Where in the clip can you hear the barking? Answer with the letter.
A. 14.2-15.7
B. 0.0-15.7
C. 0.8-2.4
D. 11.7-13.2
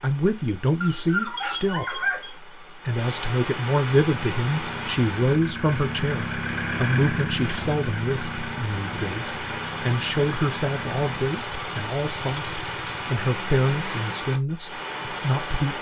C.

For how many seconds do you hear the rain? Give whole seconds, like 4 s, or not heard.
16 s.